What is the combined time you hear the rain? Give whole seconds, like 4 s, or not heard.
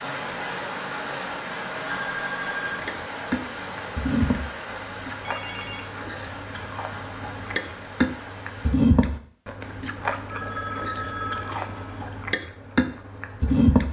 9 s.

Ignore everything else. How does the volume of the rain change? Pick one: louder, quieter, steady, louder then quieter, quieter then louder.
quieter.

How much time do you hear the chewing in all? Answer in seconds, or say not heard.
11 s.